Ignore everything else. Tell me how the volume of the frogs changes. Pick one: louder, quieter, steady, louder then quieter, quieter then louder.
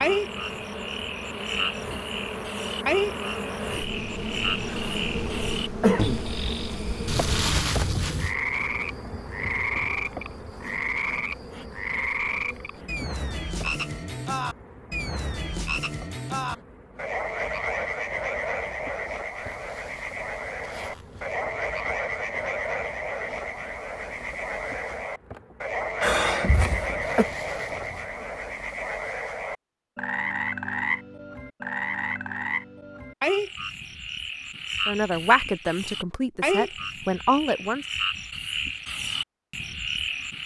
steady.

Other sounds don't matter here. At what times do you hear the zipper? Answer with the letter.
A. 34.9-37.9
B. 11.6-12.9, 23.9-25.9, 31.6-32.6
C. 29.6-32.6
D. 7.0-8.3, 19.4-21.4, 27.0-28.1
D.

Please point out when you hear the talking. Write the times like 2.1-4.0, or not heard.
34.9-37.9.